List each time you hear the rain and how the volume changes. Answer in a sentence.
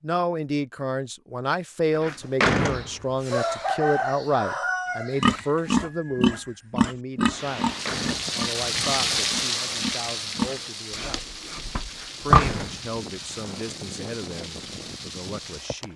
The rain can be heard from 7.3 to 15.9 s, getting quieter.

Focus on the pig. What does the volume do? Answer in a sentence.
The volume of the pig goes down, then up.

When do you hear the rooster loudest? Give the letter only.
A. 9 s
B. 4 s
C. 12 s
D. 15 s
B.